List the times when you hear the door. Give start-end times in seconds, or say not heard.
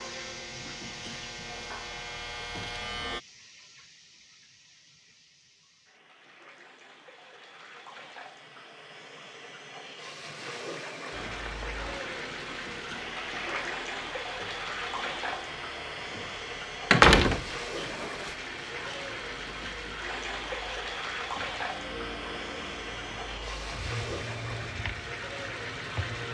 16.9-18.3.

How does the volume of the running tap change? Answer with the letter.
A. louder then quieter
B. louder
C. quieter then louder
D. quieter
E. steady
B.